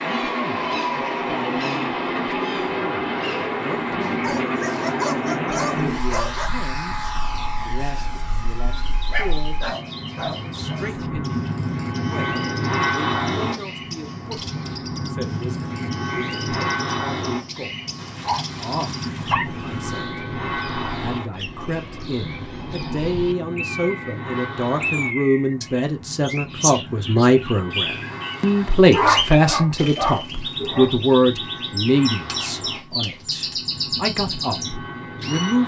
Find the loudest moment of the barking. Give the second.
29 s.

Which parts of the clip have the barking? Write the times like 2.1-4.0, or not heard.
4.2-6.5, 9.1-10.8, 17.9-20.0, 28.9-30.9.